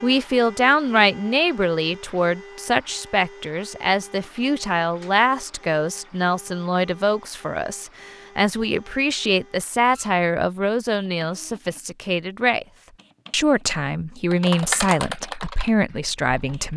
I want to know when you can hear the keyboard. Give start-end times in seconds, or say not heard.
14.3-16.7.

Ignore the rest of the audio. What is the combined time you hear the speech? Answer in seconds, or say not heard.
16 s.